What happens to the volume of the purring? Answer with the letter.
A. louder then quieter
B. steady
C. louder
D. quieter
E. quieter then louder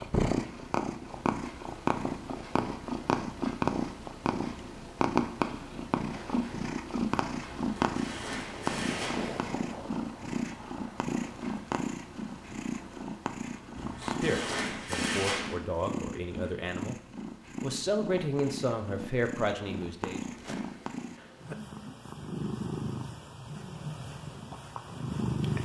D.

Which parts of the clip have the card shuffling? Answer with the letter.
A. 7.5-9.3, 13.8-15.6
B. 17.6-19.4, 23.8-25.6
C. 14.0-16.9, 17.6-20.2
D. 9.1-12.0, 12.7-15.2
A.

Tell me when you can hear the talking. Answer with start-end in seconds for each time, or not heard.
14.0-16.9, 17.6-20.2.